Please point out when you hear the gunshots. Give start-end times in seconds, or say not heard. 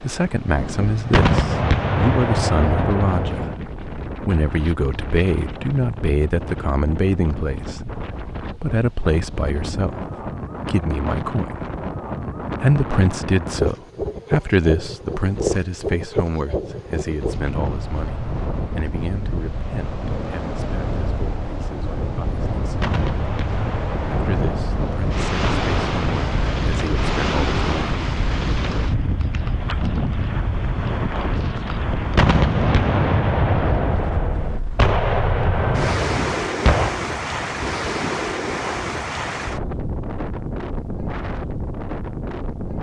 1.1-3.5, 22.8-26.7, 32.1-36.9.